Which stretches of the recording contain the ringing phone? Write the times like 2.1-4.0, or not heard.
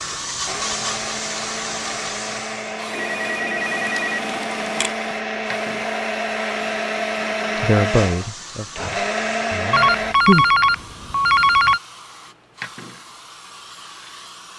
2.9-5.0, 9.7-11.8.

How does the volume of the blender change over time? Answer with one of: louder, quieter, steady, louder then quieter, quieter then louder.
louder.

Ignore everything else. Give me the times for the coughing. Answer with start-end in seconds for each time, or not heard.
not heard.